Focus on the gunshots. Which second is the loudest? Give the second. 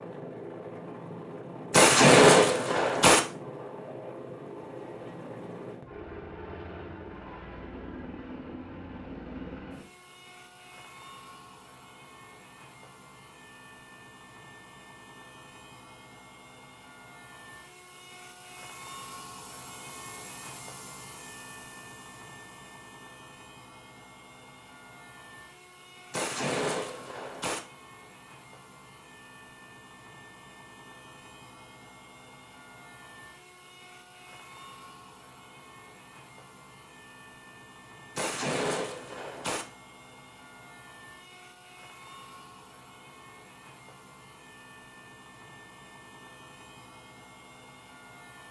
2 s.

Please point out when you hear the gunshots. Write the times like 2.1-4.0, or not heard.
1.7-3.2, 26.1-27.6, 38.1-39.6.